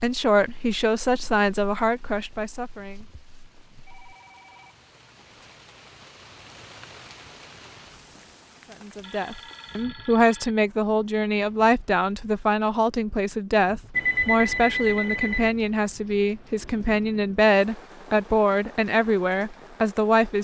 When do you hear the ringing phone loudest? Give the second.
14 s.